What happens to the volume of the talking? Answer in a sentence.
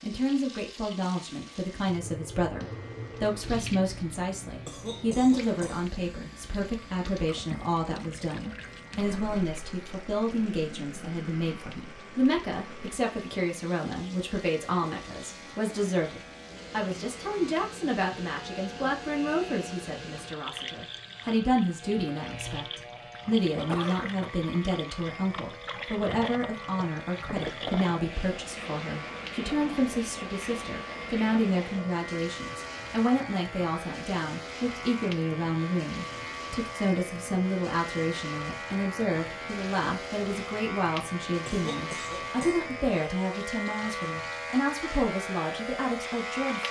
The volume of the talking stays about the same.